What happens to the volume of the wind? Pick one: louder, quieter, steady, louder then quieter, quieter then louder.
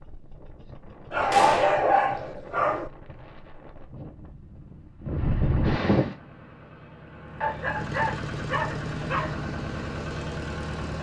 louder.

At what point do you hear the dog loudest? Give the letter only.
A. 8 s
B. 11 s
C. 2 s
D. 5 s
C.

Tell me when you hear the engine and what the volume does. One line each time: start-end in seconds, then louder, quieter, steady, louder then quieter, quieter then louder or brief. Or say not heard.
6.1-10.9 louder.